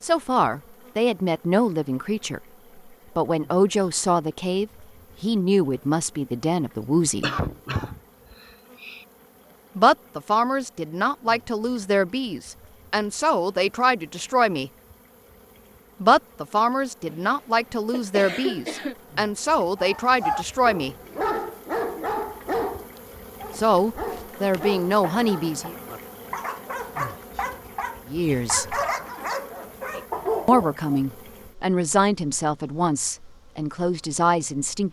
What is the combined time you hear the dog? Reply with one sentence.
You can hear the dog for 11 seconds altogether.